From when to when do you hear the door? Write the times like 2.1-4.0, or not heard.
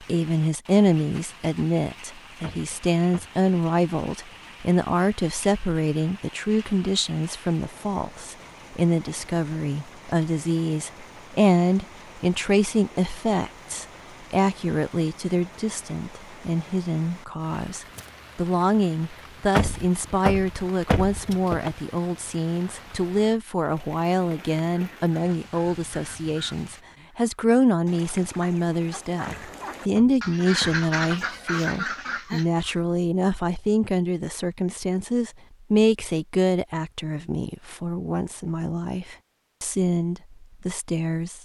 2.4-3.3, 19.6-21.7, 29.2-31.3.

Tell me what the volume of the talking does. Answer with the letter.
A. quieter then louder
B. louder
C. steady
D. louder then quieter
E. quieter
C.